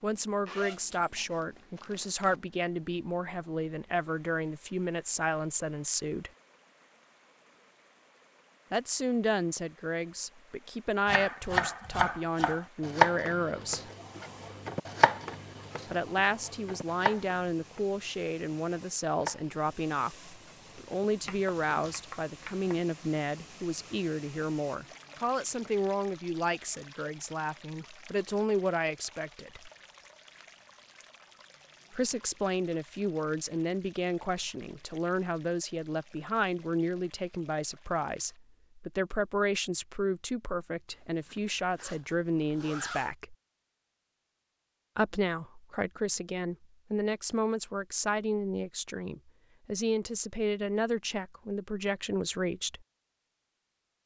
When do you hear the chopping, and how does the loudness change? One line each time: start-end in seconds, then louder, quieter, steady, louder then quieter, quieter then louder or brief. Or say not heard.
11.1-22.8 quieter.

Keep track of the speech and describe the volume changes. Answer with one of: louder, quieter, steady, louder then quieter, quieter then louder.
steady.